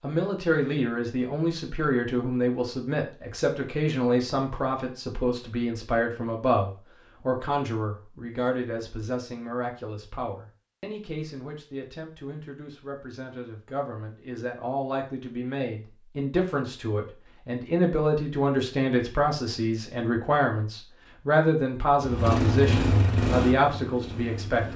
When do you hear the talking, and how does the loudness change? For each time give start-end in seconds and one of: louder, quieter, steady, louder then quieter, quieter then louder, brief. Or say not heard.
0.0-24.7 quieter then louder.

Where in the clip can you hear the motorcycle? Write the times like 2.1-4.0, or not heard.
21.9-24.7.